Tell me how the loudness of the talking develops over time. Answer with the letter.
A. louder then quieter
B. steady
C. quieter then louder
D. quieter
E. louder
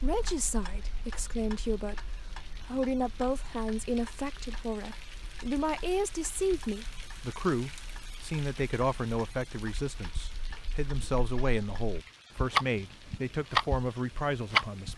B.